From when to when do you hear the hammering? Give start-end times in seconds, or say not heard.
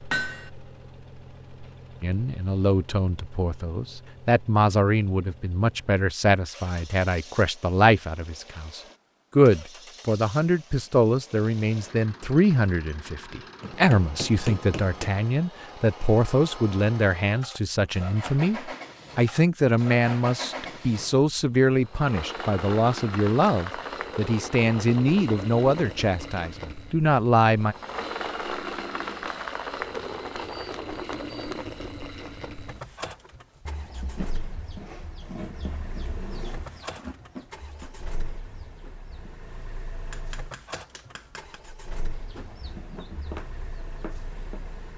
0.1-0.5, 13.6-15.1, 29.8-31.6, 40.1-41.6.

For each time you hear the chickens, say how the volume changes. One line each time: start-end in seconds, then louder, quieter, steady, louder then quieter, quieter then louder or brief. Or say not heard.
33.3-39.5 quieter
42.1-44.8 brief.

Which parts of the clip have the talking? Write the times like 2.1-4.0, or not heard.
2.0-27.8.